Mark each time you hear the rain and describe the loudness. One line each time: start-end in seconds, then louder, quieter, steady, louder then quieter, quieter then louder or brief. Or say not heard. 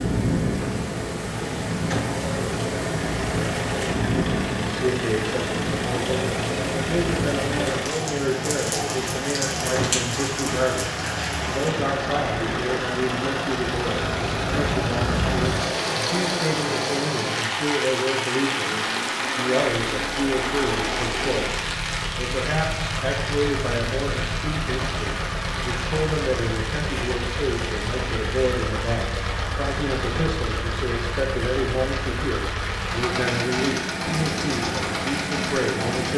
0.0-36.1 quieter.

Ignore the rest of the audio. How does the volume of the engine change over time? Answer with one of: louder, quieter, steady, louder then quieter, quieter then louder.
steady.